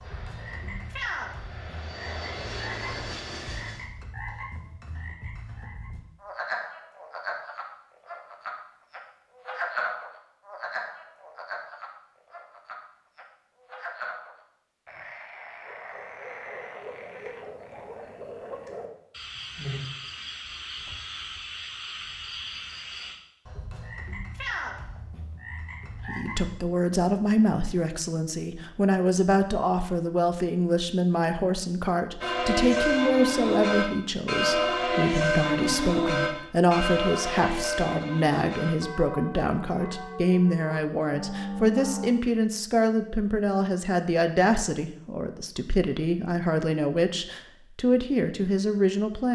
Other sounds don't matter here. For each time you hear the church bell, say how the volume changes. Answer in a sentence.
The church bell can be heard from 32.2 to 42.1 s, getting quieter.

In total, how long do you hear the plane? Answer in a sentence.
The plane can be heard for 4 seconds in total.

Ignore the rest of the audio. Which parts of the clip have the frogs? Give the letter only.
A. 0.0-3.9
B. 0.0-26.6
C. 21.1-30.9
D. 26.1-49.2
B.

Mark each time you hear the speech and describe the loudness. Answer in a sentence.
The speech can be heard from 26.1 to 49.2 s, at a steady volume.